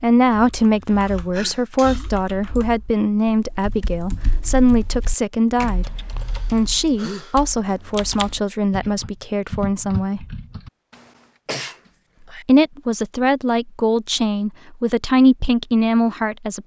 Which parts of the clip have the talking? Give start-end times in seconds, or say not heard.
0.0-10.2, 12.4-16.6.